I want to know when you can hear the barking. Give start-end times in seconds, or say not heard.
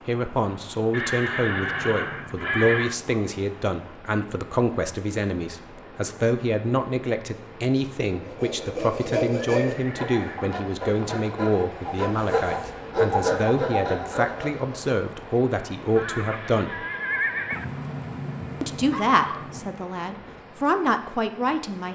1.6-3.3, 17.5-19.8.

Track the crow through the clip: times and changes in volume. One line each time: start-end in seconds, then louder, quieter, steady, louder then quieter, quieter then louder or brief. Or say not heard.
not heard.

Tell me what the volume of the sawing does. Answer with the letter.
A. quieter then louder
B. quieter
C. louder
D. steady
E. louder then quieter
A.